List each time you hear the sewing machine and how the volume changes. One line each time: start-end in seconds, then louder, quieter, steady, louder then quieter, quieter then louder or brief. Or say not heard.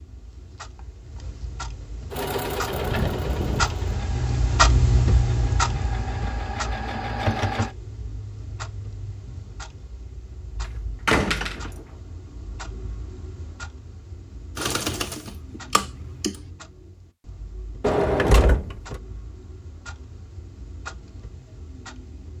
2.1-7.7 quieter then louder
14.6-16.4 brief.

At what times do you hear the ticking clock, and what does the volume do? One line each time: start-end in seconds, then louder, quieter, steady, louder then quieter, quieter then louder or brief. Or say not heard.
0.0-22.3 quieter.